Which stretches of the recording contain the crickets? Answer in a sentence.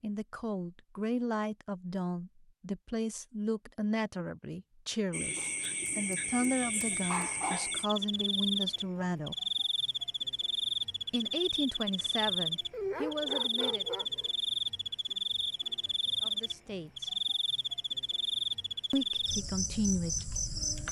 You can hear the crickets from 5.1 to 20.8 s.